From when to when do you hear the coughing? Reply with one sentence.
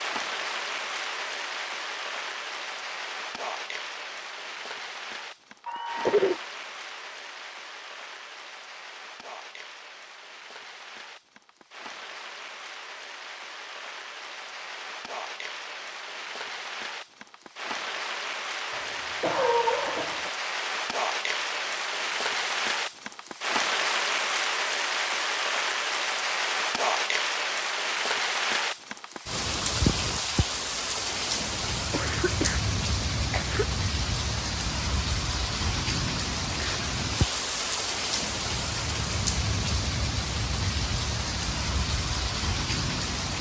The coughing can be heard from 5.7 to 6.4 s, from 18.7 to 20.3 s, from 31.9 to 32.6 s and from 33.3 to 33.7 s.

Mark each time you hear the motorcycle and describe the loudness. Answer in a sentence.
You can't hear the motorcycle here.